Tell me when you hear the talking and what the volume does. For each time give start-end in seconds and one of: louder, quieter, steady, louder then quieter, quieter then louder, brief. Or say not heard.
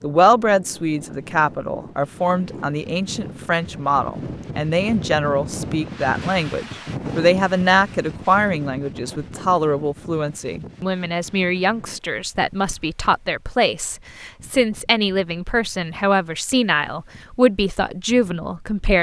0.0-18.9 steady.